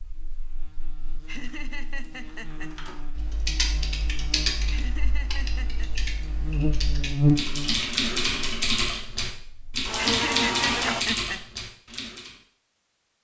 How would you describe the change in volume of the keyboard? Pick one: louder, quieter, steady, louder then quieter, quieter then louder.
quieter then louder.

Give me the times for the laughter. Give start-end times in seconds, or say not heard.
1.2-2.8, 4.7-5.9, 9.9-11.4.